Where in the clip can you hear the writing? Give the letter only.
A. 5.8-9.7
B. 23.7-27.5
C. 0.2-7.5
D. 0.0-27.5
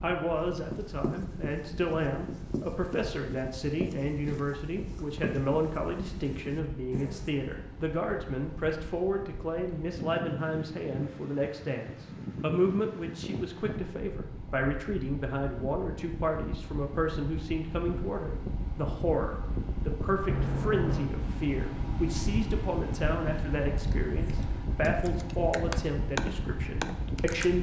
C.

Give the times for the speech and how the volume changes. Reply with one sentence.
You can hear the speech from 0.0 to 27.5 s, at a steady volume.